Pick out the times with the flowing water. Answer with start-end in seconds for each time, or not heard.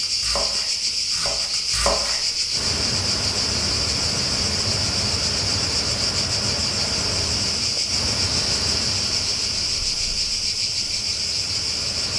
2.5-12.1.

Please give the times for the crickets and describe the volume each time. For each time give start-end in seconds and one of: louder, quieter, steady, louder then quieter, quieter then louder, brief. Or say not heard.
0.0-12.1 steady.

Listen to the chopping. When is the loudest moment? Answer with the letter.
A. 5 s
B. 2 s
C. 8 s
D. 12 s
B.